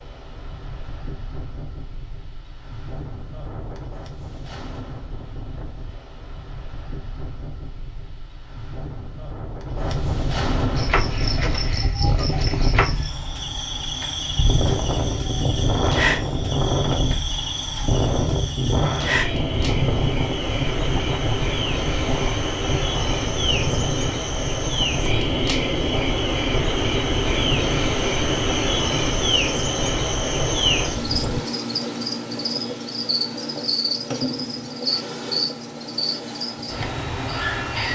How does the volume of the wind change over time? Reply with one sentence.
The volume of the wind goes up, then down.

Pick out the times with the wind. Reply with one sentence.
The wind can be heard from 0.0 to 31.4 s.